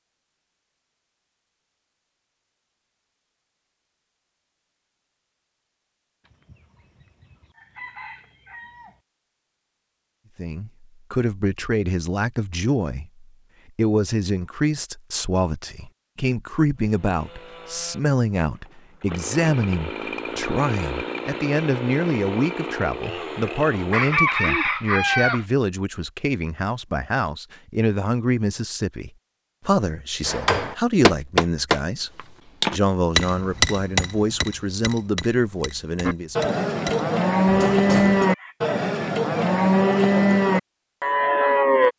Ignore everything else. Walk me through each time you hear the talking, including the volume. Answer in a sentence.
You can hear the talking from 10.3 to 36.5 s, at a steady volume.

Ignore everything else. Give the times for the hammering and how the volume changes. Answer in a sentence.
The hammering can be heard from 30.2 to 38.2 s, getting quieter then louder.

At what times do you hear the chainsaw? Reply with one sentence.
The chainsaw can be heard from 16.8 to 24.4 s.